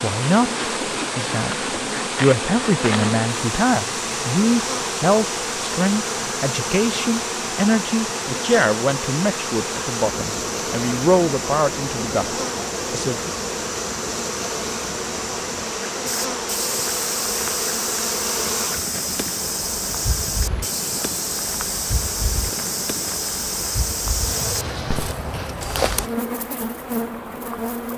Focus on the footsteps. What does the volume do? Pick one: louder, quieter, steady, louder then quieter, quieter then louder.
steady.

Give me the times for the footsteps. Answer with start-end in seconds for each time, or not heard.
16.1-26.1.